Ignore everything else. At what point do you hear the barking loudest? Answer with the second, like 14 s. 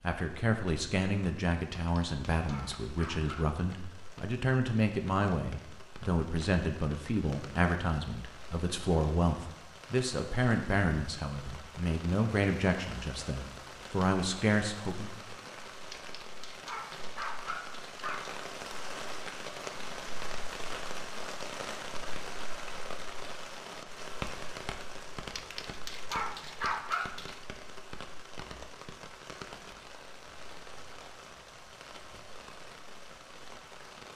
27 s.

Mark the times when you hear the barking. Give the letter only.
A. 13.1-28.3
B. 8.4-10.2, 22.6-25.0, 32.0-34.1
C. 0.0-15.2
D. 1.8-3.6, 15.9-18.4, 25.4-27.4
D.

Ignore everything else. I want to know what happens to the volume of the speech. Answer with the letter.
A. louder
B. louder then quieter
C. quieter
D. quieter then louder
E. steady
E.